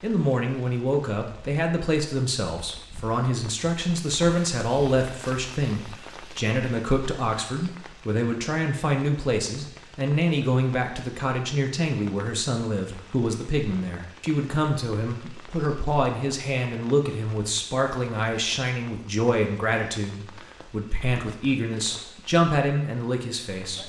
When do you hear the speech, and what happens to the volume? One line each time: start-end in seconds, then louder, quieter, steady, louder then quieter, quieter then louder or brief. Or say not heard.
0.0-23.8 steady.